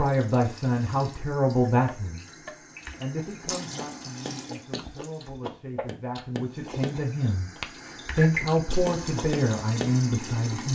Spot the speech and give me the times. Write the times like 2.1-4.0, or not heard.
0.0-10.6.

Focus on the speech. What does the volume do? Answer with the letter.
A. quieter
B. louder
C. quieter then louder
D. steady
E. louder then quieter
C.